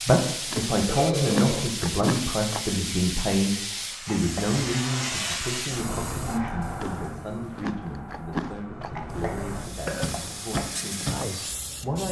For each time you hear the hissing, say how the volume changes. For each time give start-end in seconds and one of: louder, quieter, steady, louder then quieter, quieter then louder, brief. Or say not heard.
0.0-12.0 quieter then louder.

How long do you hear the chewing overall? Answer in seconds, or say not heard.
5 s.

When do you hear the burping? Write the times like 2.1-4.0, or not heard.
0.8-1.7, 4.1-4.6, 8.9-10.7.